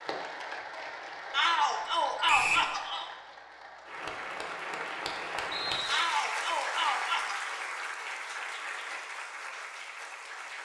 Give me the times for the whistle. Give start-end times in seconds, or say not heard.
2.2-2.7, 5.5-6.1.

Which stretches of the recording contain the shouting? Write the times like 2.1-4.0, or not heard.
1.3-3.0, 5.8-7.5.